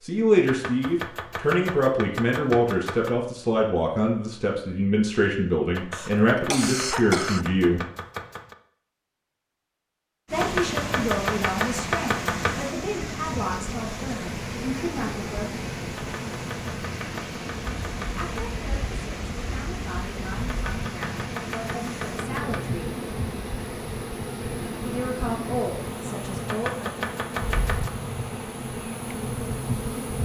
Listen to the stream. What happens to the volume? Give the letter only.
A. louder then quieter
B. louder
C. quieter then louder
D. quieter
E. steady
D.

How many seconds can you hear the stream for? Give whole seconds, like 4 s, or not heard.
20 s.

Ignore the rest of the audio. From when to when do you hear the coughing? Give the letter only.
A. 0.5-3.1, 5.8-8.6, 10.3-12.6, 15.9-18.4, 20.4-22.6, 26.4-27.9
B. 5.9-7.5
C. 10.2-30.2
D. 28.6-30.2
B.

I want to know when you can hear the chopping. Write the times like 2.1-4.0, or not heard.
0.5-3.1, 5.8-8.6, 10.3-12.6, 15.9-18.4, 20.4-22.6, 26.4-27.9.